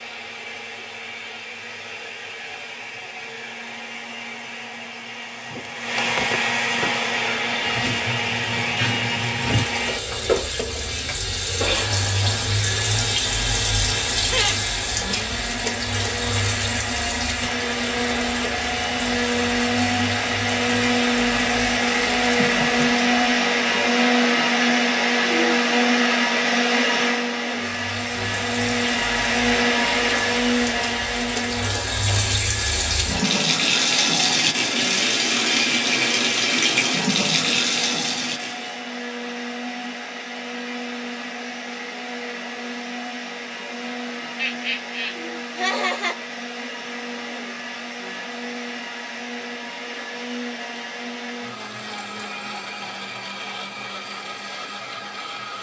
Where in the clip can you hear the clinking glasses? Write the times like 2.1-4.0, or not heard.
not heard.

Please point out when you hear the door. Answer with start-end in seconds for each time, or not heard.
5.5-7.0.